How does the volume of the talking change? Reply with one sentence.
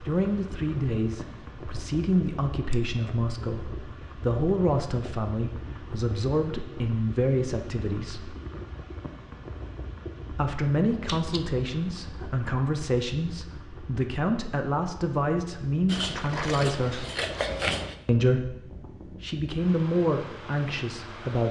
The loudness of the talking stays about the same.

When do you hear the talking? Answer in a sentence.
The talking can be heard from 0.0 to 8.3 s, from 10.3 to 17.1 s and from 18.1 to 21.4 s.